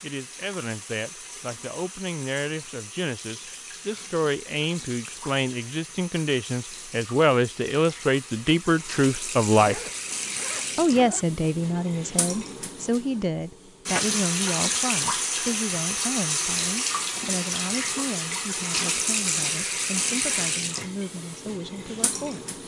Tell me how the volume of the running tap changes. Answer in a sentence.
The volume of the running tap goes up.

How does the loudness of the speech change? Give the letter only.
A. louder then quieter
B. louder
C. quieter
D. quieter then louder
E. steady
A.